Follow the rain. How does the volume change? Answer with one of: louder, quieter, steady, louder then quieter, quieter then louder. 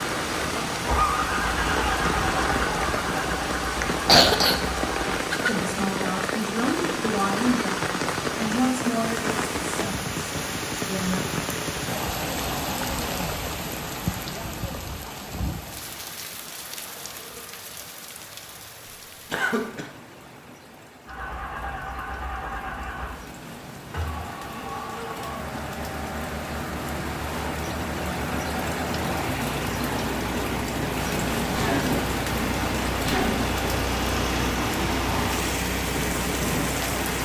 quieter then louder.